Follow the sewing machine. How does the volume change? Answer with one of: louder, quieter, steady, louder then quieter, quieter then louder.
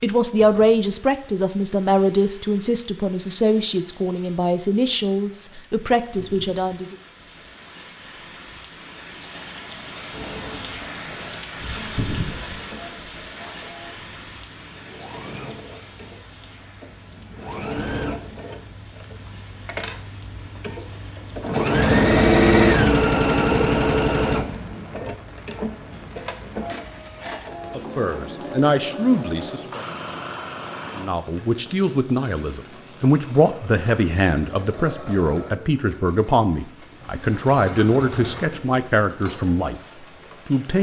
louder then quieter.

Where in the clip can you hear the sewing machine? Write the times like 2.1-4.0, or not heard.
10.1-40.7.